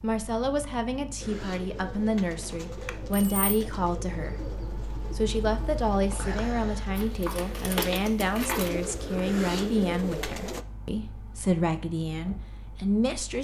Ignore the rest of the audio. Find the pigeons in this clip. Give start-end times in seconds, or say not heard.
1.2-10.7.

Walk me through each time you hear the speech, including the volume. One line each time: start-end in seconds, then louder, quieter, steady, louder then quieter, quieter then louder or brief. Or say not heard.
0.0-13.3 steady.